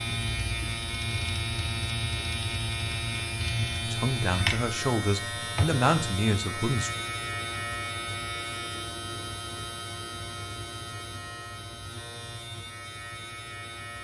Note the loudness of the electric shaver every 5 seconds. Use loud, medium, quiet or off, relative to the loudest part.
loud, loud, medium.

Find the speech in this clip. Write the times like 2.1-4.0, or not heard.
3.9-6.9.